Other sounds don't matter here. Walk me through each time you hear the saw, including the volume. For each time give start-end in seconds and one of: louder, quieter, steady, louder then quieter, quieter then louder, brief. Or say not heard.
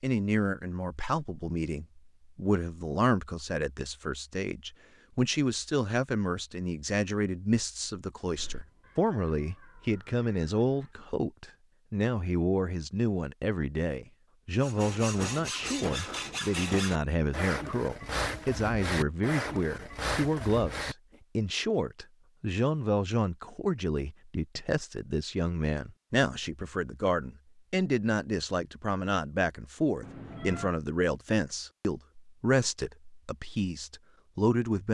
14.6-20.9 steady.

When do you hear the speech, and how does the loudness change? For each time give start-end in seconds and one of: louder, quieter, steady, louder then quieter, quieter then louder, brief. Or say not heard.
0.0-34.8 steady.